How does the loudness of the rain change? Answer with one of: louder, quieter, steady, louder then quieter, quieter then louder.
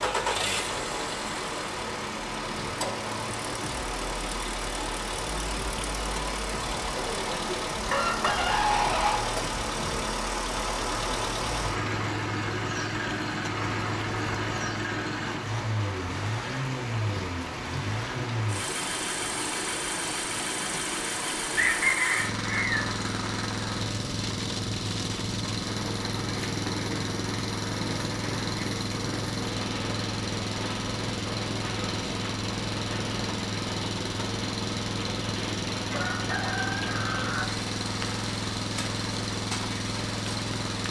steady.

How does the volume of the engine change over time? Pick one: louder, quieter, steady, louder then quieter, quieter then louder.
steady.